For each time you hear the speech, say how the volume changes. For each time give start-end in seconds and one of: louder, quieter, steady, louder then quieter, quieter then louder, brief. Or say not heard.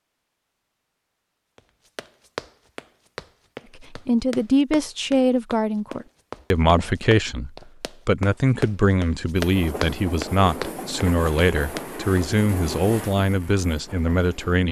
3.8-14.6 steady.